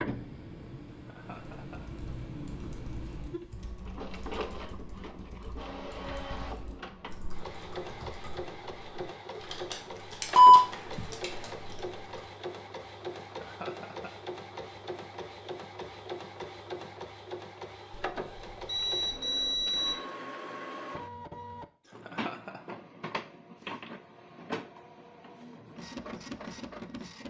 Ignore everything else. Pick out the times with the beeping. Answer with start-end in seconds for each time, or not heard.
10.3-11.1, 17.9-19.9.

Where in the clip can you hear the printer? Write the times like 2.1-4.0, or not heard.
0.0-27.2.